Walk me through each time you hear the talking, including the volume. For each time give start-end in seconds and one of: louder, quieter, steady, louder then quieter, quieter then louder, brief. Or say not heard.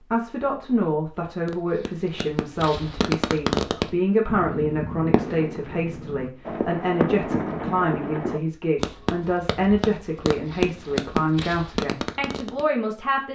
0.1-13.3 steady.